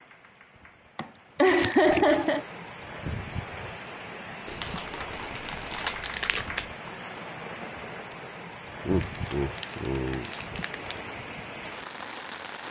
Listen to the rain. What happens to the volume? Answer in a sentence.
The loudness of the rain goes up.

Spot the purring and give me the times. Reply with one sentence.
The purring can't be heard in this clip.